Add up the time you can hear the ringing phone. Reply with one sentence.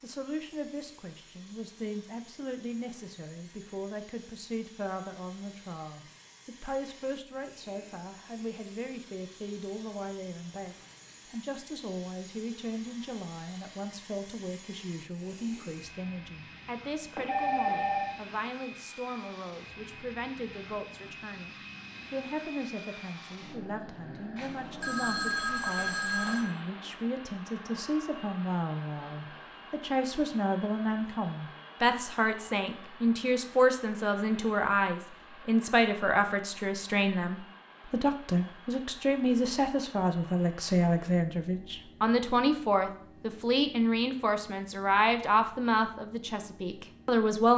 You can hear the ringing phone for 3 seconds altogether.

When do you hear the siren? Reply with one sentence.
The siren can't be heard in this clip.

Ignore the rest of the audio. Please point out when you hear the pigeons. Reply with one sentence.
You can't hear the pigeons here.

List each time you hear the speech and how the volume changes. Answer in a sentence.
You can hear the speech from 0.0 to 47.5 s, getting louder.